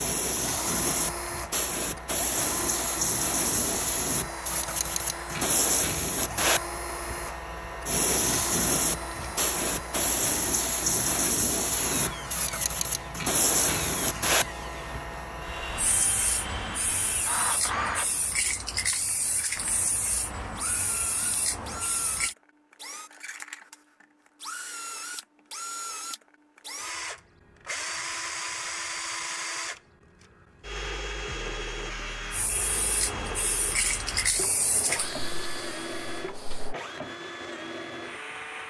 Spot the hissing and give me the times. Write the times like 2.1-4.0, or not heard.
0.0-22.4, 32.3-36.8.